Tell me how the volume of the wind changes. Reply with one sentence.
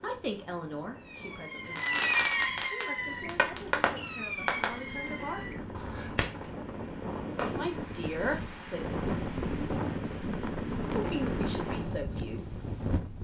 The loudness of the wind goes up.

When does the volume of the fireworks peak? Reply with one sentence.
The volume of the fireworks peaks at 2 seconds.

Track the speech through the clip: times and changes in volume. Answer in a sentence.
The speech can be heard from 0.0 to 5.7 s, getting quieter then louder; briefly from 7.5 to 8.8 s; and briefly from 10.9 to 12.5 s.